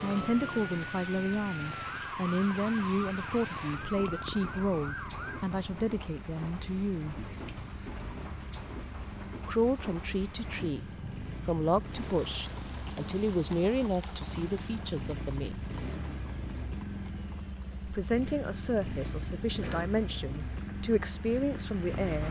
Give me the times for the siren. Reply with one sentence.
You can hear the siren from 0.0 to 5.5 s.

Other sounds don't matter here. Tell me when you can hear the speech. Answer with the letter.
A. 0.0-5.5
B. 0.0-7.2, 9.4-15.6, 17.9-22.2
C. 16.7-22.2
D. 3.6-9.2
B.